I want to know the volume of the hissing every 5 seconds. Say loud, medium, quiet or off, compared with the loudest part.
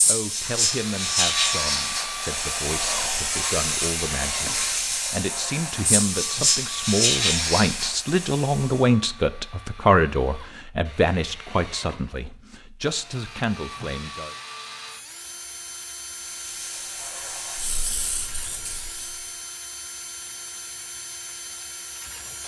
loud, loud, off, quiet, off.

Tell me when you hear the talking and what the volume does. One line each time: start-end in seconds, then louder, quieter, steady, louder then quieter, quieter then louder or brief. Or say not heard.
0.1-14.3 louder then quieter.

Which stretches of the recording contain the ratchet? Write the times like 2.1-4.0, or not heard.
not heard.